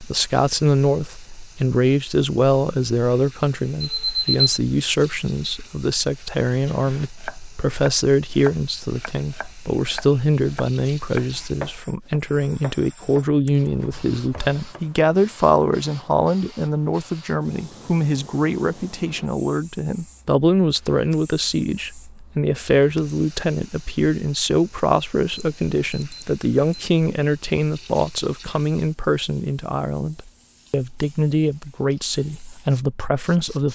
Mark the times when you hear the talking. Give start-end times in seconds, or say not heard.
0.0-33.7.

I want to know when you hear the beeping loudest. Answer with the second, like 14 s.
4 s.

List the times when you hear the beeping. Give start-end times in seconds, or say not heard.
3.8-4.6, 25.2-26.9.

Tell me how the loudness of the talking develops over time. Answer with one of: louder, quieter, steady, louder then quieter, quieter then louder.
steady.